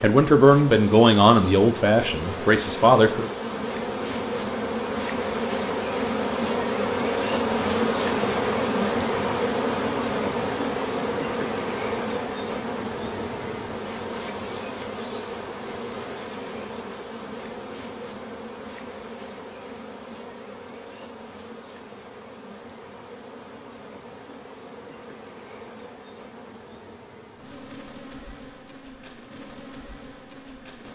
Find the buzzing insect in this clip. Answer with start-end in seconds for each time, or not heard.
0.0-30.9.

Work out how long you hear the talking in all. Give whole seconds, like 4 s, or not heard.
3 s.